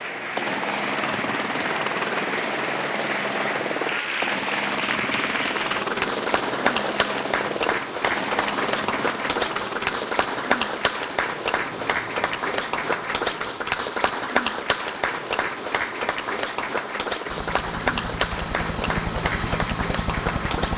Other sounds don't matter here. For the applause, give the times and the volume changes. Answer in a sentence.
The applause can be heard from 0.0 to 20.7 s, at a steady volume.